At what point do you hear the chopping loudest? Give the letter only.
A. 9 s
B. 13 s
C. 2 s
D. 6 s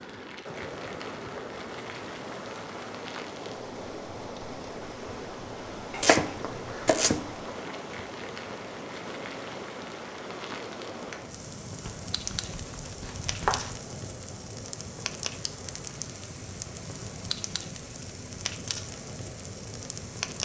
D.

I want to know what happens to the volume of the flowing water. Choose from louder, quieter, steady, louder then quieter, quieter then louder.
quieter.